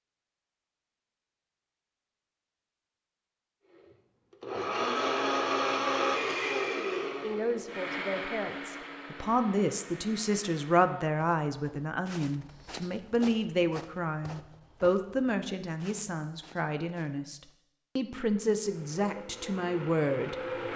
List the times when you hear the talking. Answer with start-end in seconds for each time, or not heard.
7.2-20.7.